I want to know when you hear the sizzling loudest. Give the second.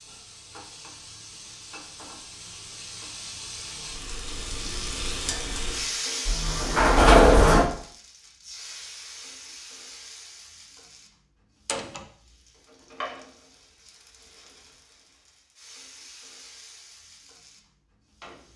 6 s.